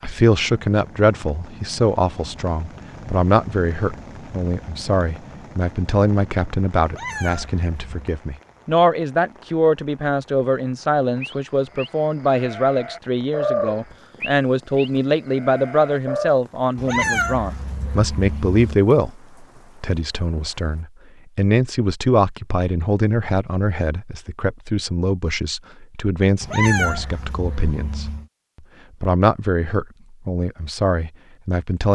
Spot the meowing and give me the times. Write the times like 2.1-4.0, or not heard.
6.8-8.1, 16.8-18.8, 26.4-28.2.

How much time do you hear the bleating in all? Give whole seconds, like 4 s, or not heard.
5 s.